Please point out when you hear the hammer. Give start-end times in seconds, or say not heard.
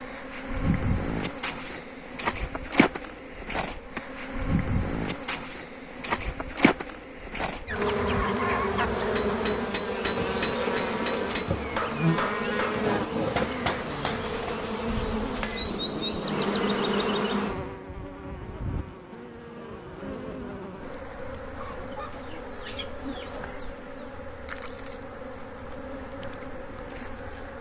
8.9-17.2.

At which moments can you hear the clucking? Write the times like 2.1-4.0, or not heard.
7.7-9.1, 21.6-23.5.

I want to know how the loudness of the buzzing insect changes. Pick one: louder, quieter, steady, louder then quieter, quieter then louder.
quieter.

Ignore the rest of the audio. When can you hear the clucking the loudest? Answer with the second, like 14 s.
9 s.